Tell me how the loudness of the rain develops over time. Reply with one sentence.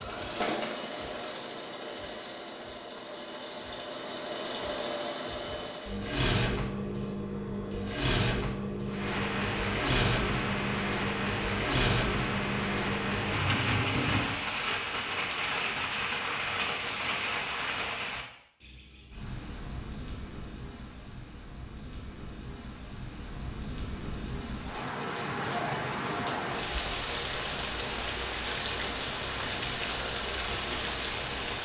The loudness of the rain goes down, then up.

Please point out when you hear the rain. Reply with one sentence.
You can hear the rain from 8.8 to 31.6 s.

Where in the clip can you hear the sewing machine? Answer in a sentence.
The sewing machine can be heard from 0.0 to 14.3 s.